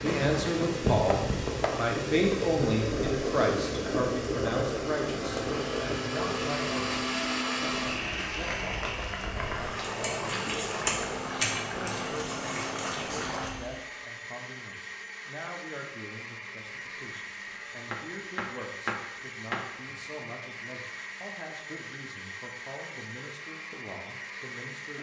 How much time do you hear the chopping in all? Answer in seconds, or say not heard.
3 s.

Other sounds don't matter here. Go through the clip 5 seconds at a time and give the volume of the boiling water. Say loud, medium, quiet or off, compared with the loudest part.
loud, medium, loud, off, off.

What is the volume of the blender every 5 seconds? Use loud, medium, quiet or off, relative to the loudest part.
medium, loud, medium, medium, medium.